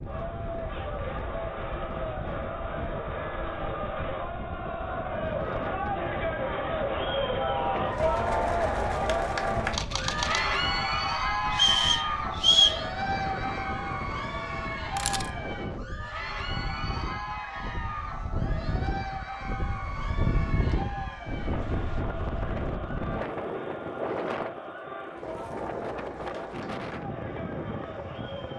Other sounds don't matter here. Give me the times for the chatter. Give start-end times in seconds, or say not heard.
0.0-28.5.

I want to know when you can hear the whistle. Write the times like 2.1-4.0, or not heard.
11.5-12.8.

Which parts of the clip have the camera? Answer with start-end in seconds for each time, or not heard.
9.7-10.6, 14.8-15.4.